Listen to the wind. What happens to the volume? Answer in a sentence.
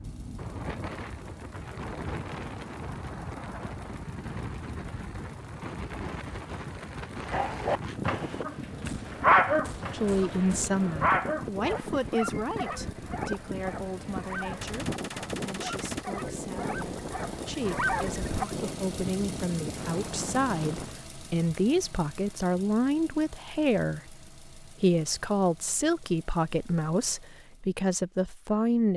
The loudness of the wind stays about the same.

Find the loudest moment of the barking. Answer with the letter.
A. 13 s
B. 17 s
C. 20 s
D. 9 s
D.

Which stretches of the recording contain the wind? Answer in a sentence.
You can hear the wind from 0.0 to 21.1 s.